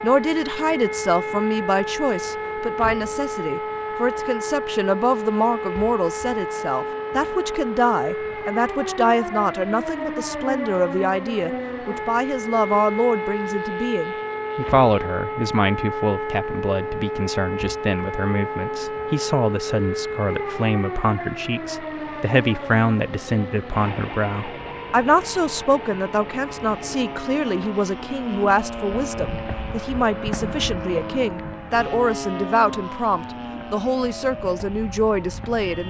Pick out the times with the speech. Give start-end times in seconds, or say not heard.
0.0-35.8.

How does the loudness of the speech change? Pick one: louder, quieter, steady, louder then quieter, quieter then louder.
steady.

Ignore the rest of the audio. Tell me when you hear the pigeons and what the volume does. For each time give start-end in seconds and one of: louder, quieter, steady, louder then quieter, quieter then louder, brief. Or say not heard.
not heard.